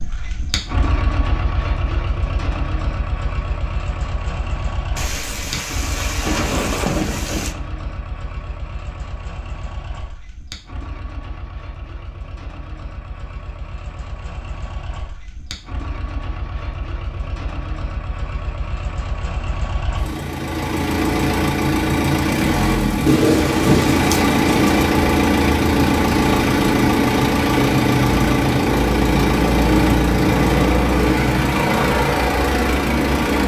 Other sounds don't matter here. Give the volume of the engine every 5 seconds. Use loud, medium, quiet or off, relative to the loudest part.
quiet, quiet, quiet, quiet, loud, loud, loud.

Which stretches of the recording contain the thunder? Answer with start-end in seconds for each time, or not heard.
5.0-7.5, 23.1-24.8.